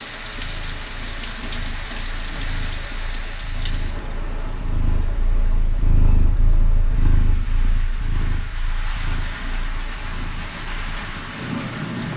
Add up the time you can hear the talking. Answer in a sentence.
The talking can't be heard in this clip.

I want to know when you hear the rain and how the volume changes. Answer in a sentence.
The rain can be heard from 0.0 to 12.1 s, getting quieter then louder.